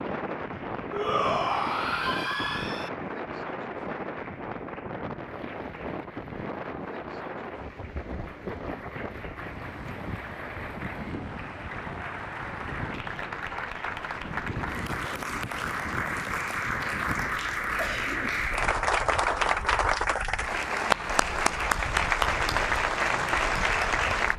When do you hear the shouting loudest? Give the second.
1 s.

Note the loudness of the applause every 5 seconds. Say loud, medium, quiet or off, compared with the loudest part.
quiet, quiet, medium, loud, loud.